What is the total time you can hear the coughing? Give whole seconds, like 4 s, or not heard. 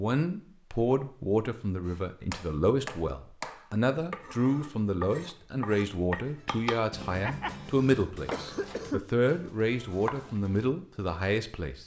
2 s.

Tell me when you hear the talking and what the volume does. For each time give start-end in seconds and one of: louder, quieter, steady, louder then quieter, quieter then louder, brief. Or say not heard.
0.0-11.8 steady.